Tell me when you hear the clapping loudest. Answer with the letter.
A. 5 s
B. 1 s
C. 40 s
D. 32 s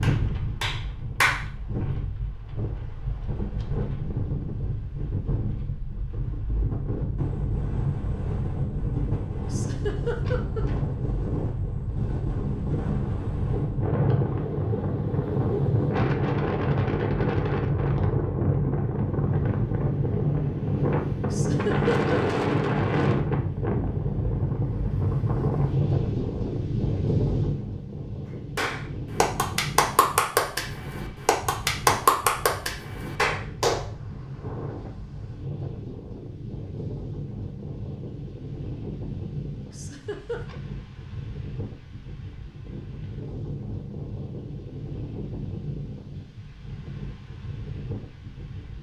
D.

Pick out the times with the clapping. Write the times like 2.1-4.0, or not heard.
0.0-1.9, 28.6-33.8.